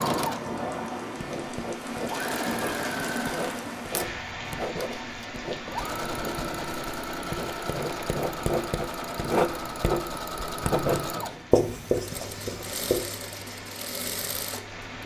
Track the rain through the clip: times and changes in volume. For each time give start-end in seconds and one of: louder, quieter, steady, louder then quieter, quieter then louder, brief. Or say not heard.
0.0-15.0 quieter.